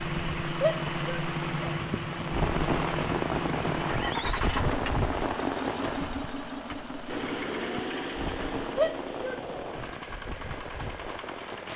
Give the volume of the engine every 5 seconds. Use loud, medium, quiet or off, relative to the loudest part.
loud, loud, medium.